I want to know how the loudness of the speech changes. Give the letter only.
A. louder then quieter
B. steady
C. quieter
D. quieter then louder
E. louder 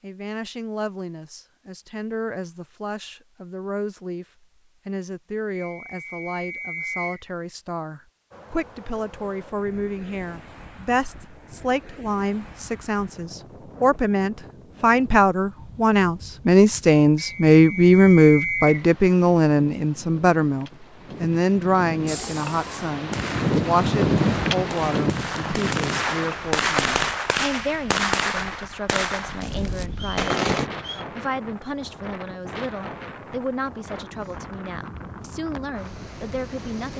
A.